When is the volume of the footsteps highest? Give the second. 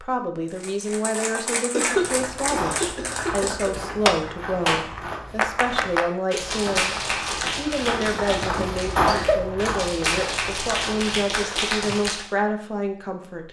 9 s.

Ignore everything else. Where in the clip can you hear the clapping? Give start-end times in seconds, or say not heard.
0.5-12.3.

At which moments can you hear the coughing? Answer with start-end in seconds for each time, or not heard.
1.7-3.8, 7.4-9.4.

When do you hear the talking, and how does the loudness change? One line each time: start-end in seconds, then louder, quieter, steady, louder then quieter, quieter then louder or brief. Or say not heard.
0.0-13.4 steady.